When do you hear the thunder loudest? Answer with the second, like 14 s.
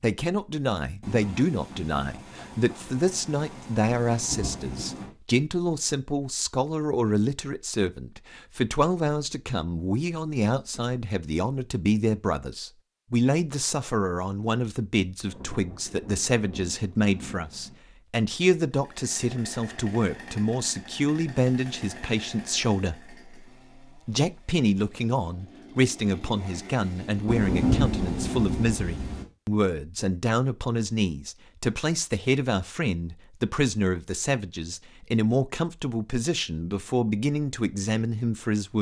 28 s.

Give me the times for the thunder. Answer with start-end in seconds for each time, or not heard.
1.0-5.1, 15.2-17.8, 27.2-29.2.